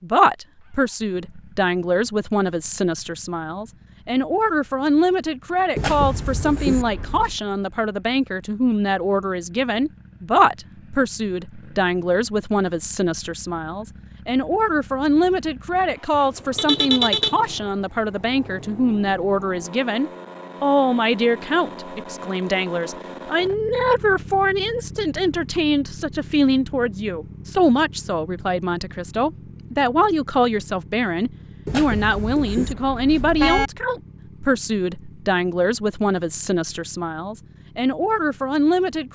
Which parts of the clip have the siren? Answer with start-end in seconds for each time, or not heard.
not heard.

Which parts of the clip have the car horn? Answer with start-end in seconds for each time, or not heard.
5.8-7.3, 16.1-17.4, 31.6-33.7.